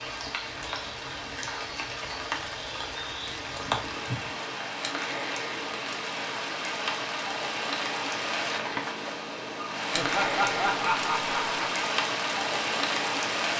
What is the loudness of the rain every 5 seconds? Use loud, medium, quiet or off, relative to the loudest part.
medium, loud, loud.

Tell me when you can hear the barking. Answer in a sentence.
You can't hear the barking here.